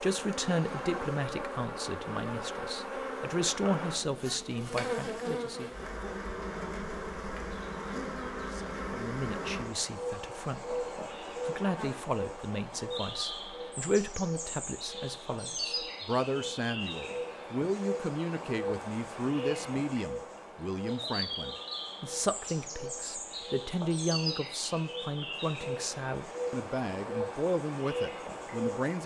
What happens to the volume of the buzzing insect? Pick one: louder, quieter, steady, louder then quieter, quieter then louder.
steady.